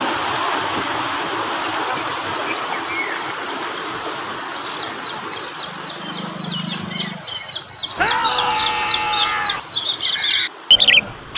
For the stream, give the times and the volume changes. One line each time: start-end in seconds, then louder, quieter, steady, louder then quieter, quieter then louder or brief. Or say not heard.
0.0-11.3 quieter.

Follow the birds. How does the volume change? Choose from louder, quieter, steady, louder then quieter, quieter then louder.
louder.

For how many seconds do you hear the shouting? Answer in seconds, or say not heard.
2 s.